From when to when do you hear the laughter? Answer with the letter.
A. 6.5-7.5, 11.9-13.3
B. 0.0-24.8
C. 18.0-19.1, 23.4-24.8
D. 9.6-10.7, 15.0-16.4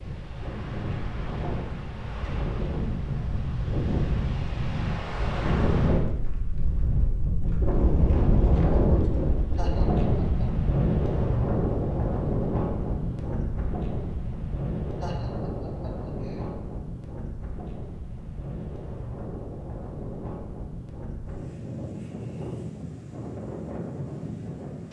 D.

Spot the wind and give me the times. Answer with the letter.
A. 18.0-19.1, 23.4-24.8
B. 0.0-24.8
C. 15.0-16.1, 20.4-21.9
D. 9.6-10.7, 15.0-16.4
B.